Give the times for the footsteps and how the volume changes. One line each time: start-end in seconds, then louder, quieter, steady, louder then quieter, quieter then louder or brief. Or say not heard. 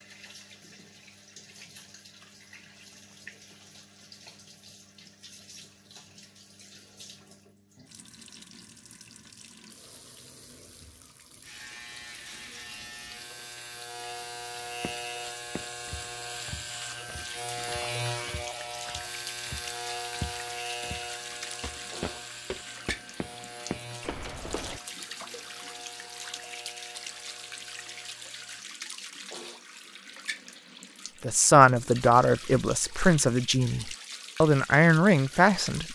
14.8-24.8 quieter then louder.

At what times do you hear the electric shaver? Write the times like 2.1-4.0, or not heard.
11.4-28.6.